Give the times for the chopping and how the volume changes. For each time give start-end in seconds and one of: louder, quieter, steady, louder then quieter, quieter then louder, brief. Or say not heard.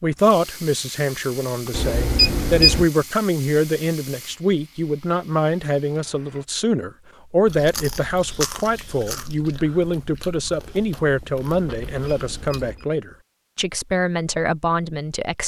not heard.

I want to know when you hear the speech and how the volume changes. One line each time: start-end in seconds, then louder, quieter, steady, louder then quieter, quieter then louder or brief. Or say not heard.
0.0-15.4 steady.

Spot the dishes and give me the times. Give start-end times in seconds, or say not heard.
not heard.